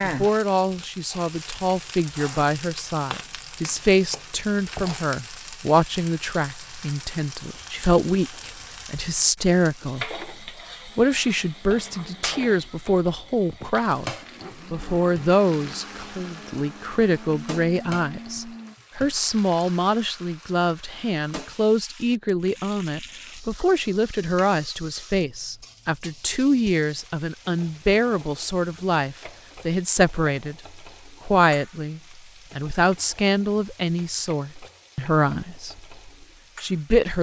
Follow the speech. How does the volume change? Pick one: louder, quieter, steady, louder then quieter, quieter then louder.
steady.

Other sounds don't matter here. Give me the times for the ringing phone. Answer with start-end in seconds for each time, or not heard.
not heard.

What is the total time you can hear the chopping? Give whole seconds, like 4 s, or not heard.
not heard.